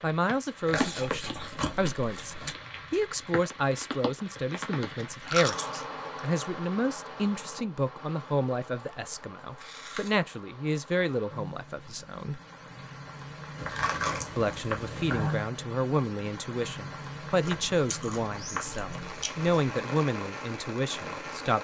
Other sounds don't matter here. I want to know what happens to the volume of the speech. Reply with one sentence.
The loudness of the speech stays about the same.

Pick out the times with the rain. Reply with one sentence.
You can hear the rain from 0.0 to 21.5 s.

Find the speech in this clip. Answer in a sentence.
You can hear the speech from 0.0 to 12.4 s and from 14.3 to 21.5 s.